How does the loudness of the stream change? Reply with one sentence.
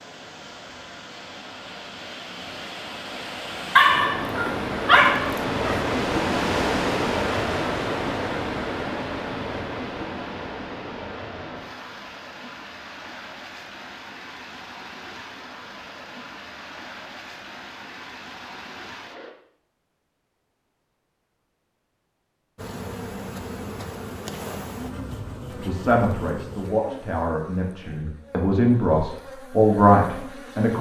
The loudness of the stream goes up, then down.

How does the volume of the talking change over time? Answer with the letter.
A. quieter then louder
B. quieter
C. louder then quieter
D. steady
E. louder
E.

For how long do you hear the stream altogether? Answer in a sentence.
The stream can be heard for 19 seconds in total.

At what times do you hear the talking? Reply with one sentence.
The talking can be heard from 25.6 to 30.7 s.